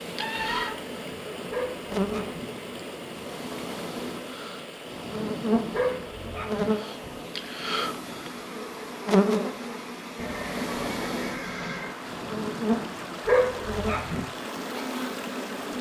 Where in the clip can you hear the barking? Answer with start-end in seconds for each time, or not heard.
1.5-2.5, 5.7-6.7, 13.2-14.2.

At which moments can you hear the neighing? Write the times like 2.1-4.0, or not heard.
0.2-1.5, 10.2-11.9.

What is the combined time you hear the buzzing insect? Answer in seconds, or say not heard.
16 s.